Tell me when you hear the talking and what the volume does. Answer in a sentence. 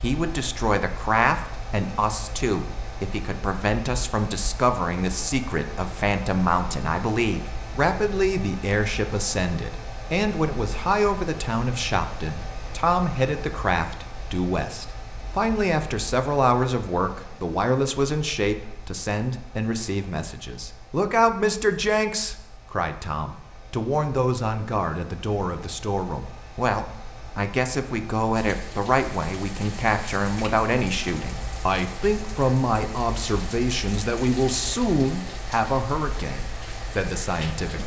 The talking can be heard from 0.0 to 37.8 s, at a steady volume.